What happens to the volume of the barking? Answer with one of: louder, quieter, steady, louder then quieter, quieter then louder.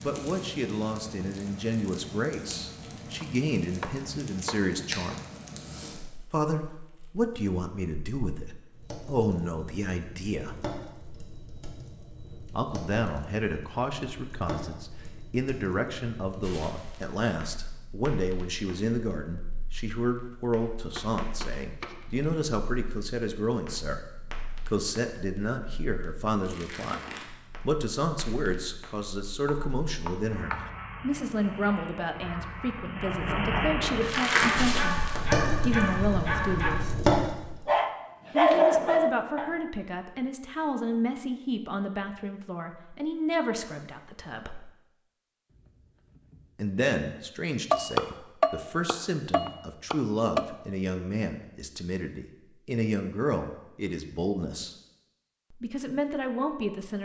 louder.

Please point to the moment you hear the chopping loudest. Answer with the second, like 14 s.
48 s.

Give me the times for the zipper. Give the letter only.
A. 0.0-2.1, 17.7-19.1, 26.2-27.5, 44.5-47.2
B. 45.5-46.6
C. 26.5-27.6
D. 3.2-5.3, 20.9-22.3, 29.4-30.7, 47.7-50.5
B.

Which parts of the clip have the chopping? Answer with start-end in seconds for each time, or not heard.
3.2-5.3, 20.9-22.3, 29.4-30.7, 47.7-50.5.